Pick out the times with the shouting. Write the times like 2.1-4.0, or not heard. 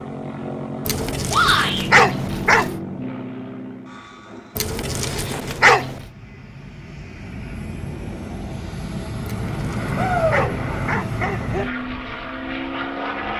1.3-1.9, 9.9-10.6.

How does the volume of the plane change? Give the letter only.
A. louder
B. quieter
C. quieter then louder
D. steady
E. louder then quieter
C.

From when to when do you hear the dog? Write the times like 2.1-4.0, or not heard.
0.8-2.8, 4.5-6.0, 9.2-11.7.